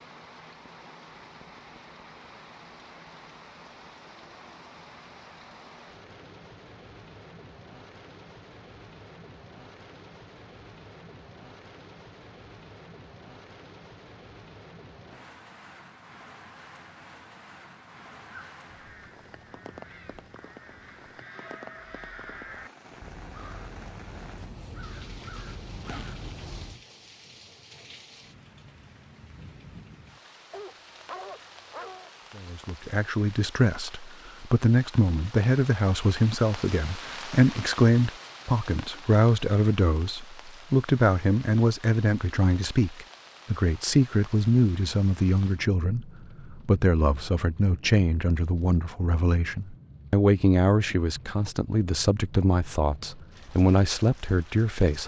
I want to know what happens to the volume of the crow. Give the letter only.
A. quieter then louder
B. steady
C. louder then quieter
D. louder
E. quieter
D.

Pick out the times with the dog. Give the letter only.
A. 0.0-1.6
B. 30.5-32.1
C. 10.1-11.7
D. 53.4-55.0
B.